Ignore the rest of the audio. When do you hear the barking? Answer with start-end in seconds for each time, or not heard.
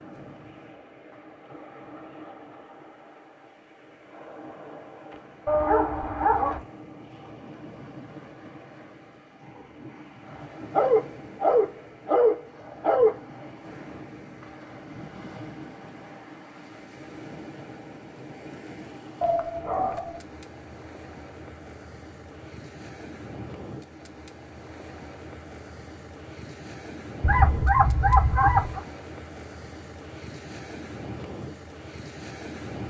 5.5-6.6, 10.7-13.2, 19.2-20.1, 27.2-28.8.